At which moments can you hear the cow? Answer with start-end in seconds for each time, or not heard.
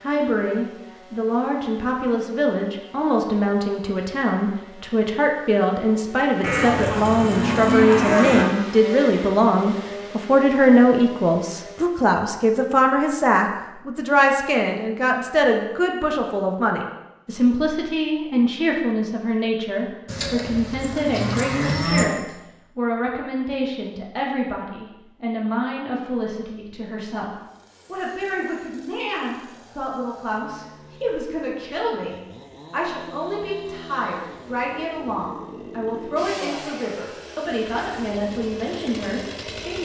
6.4-8.4, 20.1-22.1.